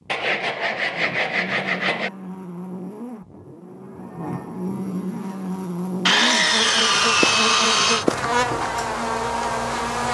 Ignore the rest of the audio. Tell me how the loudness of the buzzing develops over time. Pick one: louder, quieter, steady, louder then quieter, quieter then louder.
louder.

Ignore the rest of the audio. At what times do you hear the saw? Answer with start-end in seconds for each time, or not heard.
0.1-2.1, 6.0-8.1.